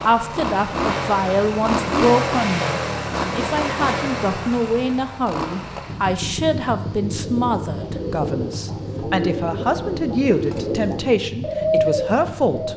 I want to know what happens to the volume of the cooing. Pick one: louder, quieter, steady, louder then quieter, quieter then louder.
louder.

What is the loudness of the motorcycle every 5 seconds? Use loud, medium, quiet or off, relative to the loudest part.
loud, medium, medium.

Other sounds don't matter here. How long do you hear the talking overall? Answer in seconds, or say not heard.
13 s.